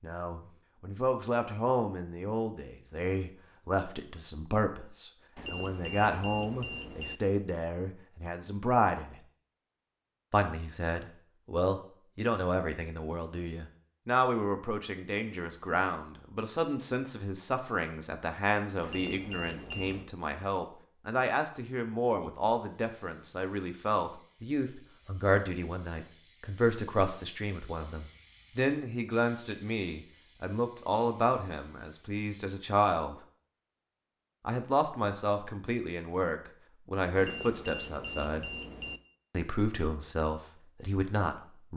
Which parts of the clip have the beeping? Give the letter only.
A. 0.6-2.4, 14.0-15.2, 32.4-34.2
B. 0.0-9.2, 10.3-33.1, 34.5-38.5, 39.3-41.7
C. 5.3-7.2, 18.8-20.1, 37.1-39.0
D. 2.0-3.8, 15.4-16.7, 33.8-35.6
C.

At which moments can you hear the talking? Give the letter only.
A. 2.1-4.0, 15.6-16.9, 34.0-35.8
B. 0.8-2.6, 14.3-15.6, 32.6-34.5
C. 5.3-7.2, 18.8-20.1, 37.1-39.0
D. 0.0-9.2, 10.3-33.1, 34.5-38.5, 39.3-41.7
D.